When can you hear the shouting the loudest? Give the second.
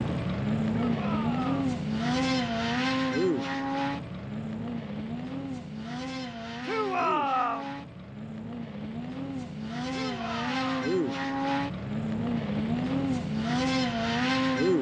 7 s.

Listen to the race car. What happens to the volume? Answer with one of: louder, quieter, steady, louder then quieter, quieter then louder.
quieter then louder.